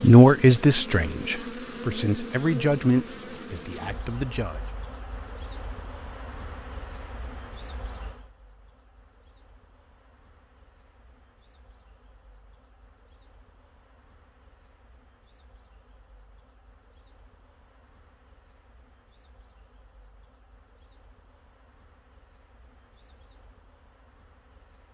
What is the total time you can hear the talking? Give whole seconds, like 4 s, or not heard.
5 s.